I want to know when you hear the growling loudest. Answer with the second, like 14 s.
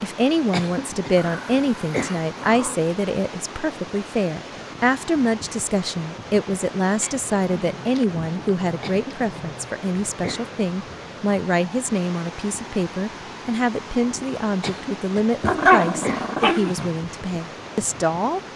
16 s.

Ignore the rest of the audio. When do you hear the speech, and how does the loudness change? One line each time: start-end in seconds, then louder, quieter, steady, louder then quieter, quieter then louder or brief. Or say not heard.
0.0-18.4 steady.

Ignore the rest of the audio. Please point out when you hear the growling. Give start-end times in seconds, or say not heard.
1.1-3.0, 7.0-9.8, 15.4-16.9.